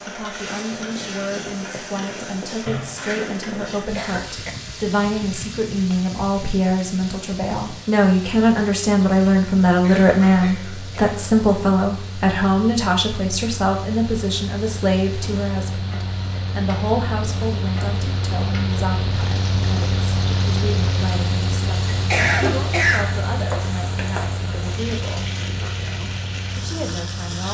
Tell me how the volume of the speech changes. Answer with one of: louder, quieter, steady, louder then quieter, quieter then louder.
louder then quieter.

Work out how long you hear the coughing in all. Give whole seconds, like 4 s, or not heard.
4 s.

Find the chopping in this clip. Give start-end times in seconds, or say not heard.
not heard.